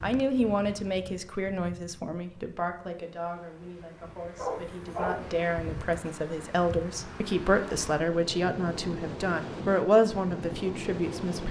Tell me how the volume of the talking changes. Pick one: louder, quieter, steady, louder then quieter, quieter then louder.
quieter then louder.